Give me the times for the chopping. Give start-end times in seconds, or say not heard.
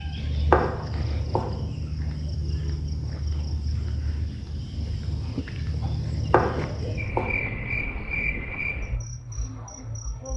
0.1-1.8, 6.0-7.8.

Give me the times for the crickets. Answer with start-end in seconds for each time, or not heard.
0.0-10.3.